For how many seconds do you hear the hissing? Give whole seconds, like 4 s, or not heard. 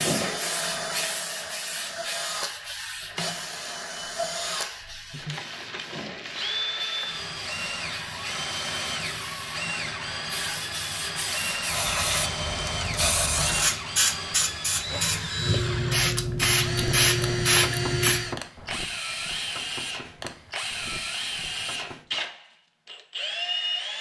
18 s.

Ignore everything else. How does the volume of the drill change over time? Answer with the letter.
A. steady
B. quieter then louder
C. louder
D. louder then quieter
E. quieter
A.